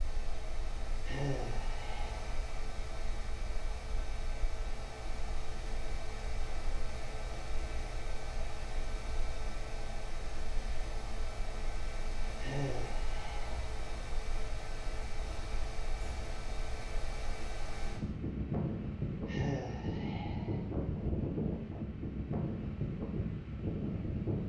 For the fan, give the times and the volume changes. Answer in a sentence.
The fan can be heard from 0.0 to 24.4 s, getting louder.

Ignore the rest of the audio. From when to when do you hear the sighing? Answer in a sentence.
You can hear the sighing from 1.1 to 2.4 s, from 12.4 to 13.7 s and from 19.2 to 20.6 s.